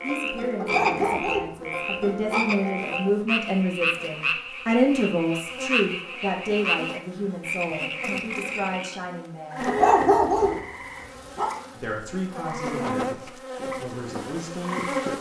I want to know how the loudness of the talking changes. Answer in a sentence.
The volume of the talking goes up, then down.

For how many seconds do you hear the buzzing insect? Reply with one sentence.
The buzzing insect can be heard for 15 seconds in total.